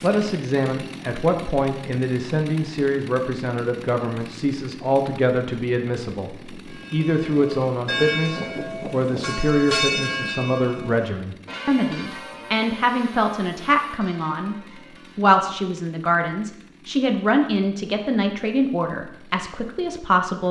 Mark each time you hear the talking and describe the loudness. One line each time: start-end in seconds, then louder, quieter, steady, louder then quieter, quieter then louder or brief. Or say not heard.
0.0-20.4 steady.